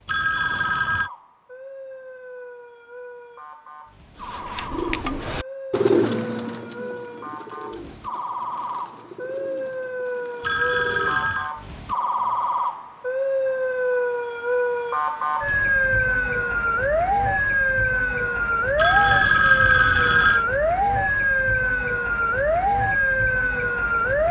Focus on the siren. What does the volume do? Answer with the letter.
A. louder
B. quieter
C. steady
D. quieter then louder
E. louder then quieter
A.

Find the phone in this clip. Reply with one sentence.
You can hear the phone from 0.1 to 1.1 s, from 10.4 to 11.5 s and from 18.8 to 20.4 s.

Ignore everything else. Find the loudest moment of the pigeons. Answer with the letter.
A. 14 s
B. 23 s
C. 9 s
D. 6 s
D.